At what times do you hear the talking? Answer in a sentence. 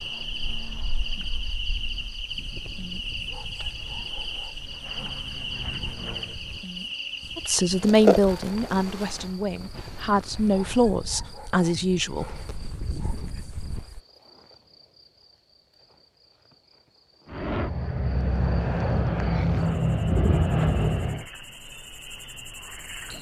The talking can be heard from 7.3 to 12.2 s.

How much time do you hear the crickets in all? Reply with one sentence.
You can hear the crickets for 23 seconds altogether.